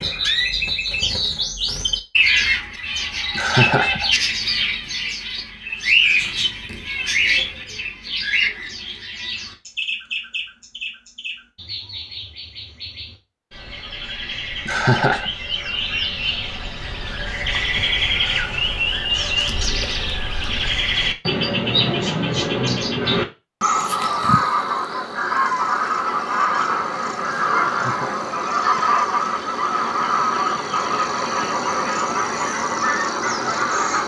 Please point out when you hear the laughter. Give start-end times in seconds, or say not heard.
3.4-4.1, 14.7-15.3, 27.6-28.8.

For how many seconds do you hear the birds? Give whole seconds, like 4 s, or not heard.
34 s.